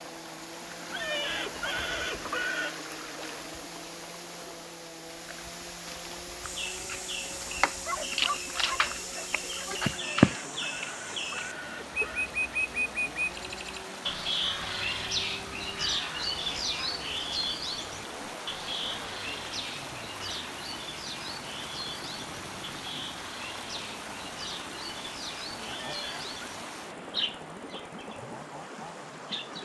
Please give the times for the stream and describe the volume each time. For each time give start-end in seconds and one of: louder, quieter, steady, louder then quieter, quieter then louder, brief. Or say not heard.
0.0-29.5 steady.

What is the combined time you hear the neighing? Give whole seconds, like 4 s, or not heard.
5 s.